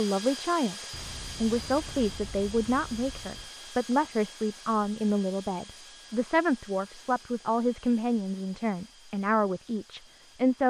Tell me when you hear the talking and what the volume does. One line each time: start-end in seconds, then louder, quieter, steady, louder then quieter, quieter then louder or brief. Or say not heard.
0.0-10.6 steady.